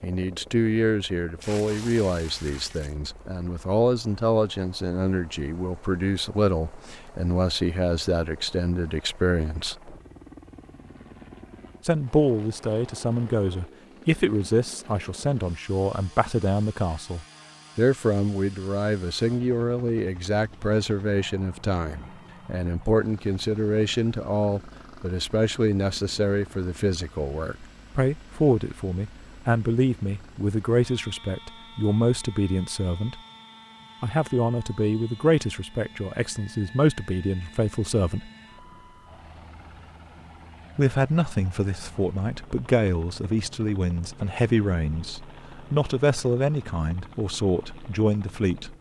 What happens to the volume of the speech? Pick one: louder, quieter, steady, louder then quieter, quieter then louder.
steady.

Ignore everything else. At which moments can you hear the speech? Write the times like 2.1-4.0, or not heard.
0.0-9.8, 11.8-33.2, 34.0-38.3, 40.8-48.7.